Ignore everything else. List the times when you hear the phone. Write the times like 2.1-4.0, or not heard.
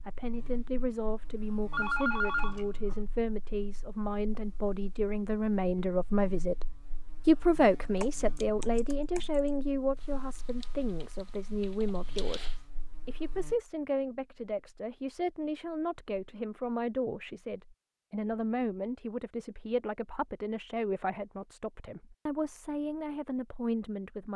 1.7-3.0.